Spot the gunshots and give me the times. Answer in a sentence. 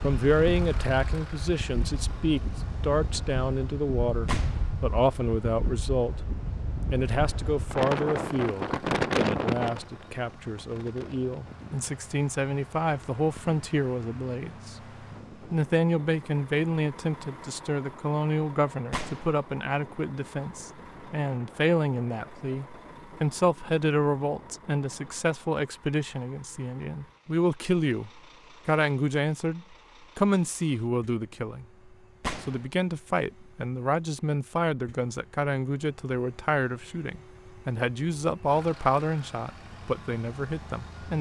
You can hear the gunshots from 4.2 to 4.7 s, from 18.9 to 19.4 s and from 32.2 to 32.6 s.